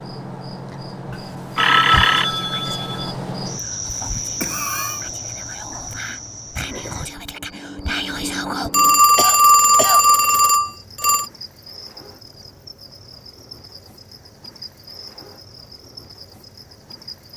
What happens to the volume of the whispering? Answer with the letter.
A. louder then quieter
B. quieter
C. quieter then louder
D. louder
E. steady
D.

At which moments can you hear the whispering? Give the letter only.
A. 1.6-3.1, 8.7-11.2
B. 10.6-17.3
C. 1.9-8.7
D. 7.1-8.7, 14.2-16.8
C.